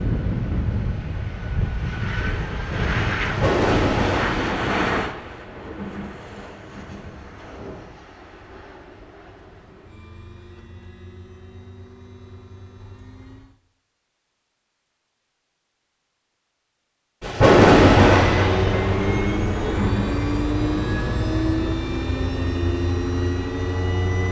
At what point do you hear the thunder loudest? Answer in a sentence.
The volume of the thunder peaks at 18 seconds.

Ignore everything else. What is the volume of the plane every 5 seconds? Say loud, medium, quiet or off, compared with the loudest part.
loud, quiet, quiet, loud, loud.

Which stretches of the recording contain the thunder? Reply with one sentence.
The thunder can be heard from 3.2 to 7.8 s and from 17.2 to 21.7 s.